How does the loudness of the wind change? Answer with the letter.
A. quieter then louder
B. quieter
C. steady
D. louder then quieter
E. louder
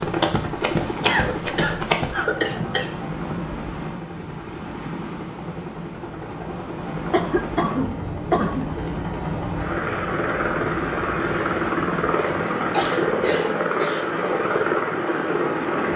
C.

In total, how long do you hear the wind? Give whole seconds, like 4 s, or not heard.
16 s.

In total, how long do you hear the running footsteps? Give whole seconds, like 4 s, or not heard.
2 s.